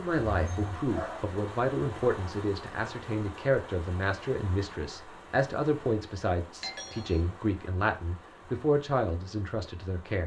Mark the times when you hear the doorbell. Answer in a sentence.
The doorbell can be heard from 0.5 to 1.2 s and from 6.6 to 7.2 s.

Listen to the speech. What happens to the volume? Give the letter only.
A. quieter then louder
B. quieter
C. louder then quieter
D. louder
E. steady
E.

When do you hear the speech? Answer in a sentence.
The speech can be heard from 0.0 to 10.2 s.